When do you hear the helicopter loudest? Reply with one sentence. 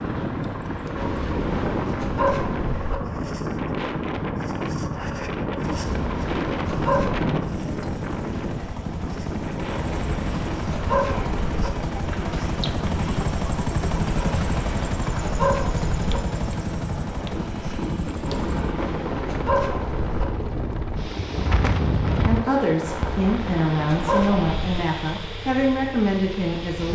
The loudest moment of the helicopter is at 14 seconds.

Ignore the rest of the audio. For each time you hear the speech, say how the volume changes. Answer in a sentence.
You can hear the speech from 22.2 to 26.9 s, at a steady volume.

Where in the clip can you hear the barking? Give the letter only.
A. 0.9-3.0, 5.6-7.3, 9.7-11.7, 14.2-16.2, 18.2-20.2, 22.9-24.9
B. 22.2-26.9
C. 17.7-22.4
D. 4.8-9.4
A.